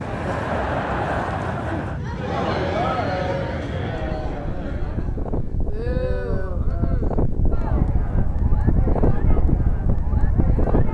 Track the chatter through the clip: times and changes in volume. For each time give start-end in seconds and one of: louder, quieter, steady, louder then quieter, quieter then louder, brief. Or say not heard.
0.0-10.8 quieter.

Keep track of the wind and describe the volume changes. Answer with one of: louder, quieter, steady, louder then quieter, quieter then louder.
louder.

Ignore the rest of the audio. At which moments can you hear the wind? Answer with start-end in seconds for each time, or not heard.
0.0-10.8.